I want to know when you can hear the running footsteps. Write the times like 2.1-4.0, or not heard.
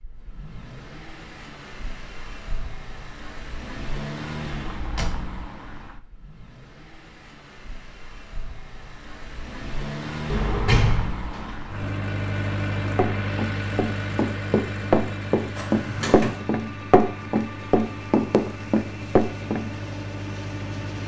12.9-19.7.